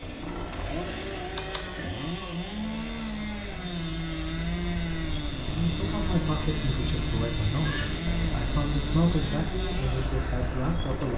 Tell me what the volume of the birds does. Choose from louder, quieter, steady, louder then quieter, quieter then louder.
louder.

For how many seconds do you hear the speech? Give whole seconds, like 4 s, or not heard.
6 s.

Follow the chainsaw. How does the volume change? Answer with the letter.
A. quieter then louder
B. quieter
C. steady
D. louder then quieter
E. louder
C.